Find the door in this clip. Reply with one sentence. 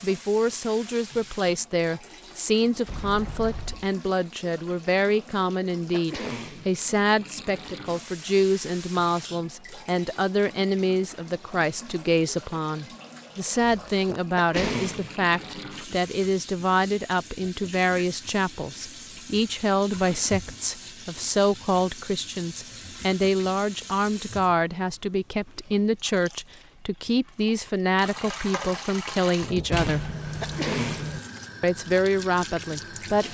The door can be heard from 2.9 to 3.9 s, from 13.5 to 14.9 s and from 29.7 to 31.2 s.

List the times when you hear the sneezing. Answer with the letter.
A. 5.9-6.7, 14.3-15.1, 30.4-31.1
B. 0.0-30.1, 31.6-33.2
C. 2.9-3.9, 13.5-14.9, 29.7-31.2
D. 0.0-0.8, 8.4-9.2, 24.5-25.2
A.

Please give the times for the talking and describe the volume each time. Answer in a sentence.
You can hear the talking from 0.0 to 30.1 s, at a steady volume; and briefly from 31.6 to 33.2 s.